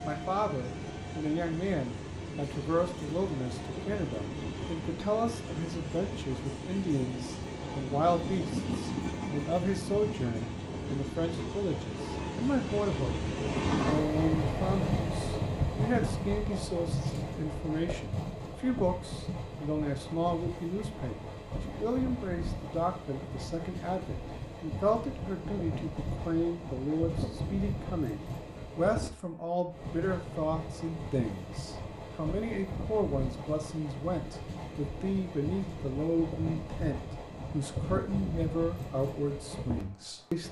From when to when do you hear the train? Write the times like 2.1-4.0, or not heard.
0.0-40.4.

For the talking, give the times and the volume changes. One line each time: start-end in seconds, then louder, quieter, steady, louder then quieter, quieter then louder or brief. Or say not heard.
0.0-40.4 steady.